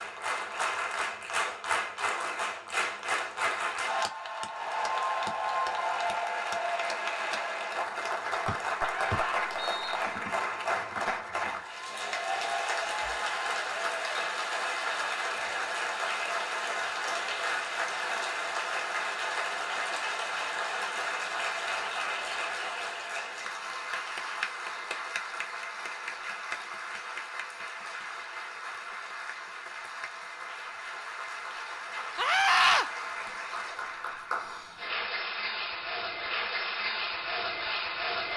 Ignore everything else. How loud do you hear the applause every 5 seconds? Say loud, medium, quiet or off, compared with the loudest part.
loud, loud, loud, loud, loud, medium, medium, loud.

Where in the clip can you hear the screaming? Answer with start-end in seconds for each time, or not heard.
8.8-9.5, 32.1-32.9.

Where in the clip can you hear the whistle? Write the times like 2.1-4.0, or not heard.
8.4-9.9.